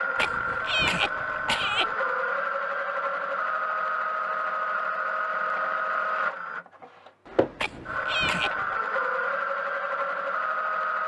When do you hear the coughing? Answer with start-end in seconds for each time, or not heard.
0.1-1.9, 7.5-8.8.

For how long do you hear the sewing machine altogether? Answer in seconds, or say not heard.
11 s.